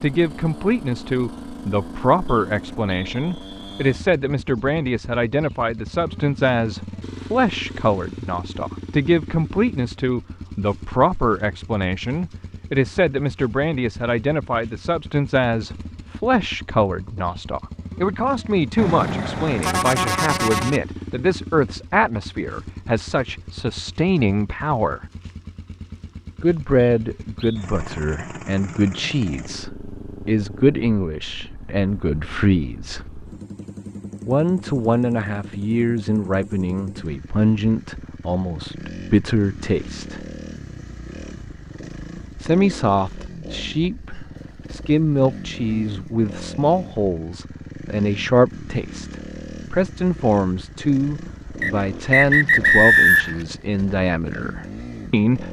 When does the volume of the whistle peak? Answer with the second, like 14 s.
53 s.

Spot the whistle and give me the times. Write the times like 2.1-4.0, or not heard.
2.2-3.9, 26.8-27.6, 51.6-53.4.